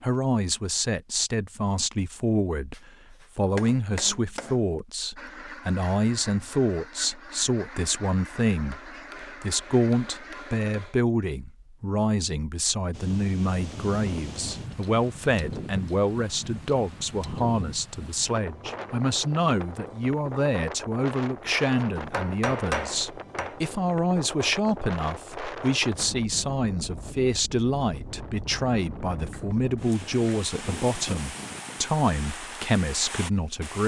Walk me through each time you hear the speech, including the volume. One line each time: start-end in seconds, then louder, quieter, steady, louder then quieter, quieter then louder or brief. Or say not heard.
0.0-33.8 steady.